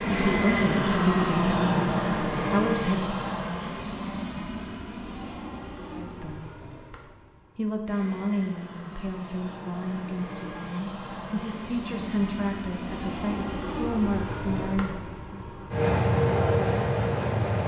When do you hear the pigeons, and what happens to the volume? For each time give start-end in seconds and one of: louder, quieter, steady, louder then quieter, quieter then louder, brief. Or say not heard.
not heard.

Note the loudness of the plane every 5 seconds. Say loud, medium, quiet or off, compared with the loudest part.
loud, quiet, medium, loud.